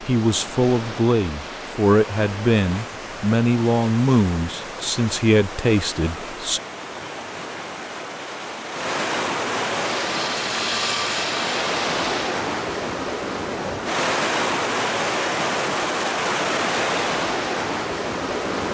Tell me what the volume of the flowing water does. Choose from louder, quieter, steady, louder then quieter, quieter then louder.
louder.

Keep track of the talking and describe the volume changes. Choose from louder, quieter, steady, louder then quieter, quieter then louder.
steady.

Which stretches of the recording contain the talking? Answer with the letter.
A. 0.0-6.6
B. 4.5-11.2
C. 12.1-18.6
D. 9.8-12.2
A.